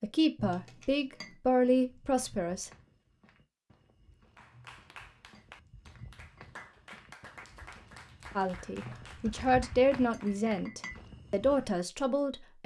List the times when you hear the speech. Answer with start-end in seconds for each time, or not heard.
0.0-2.7, 8.3-12.6.